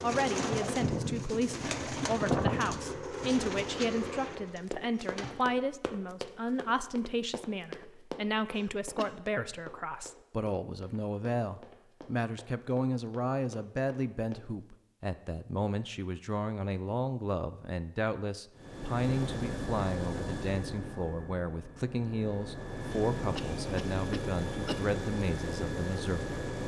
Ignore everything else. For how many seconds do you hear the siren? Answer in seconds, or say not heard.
not heard.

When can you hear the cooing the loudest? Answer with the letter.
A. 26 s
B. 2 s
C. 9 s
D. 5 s
B.